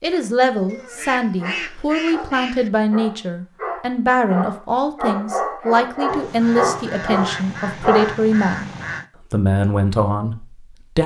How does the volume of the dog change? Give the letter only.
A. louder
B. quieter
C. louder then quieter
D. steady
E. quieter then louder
A.